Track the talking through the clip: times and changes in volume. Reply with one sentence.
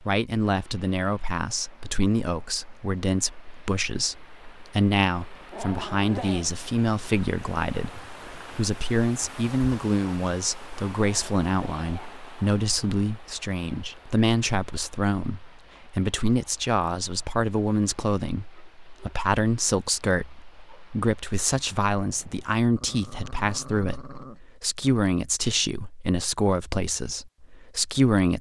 The talking can be heard from 0.0 to 28.3 s, at a steady volume.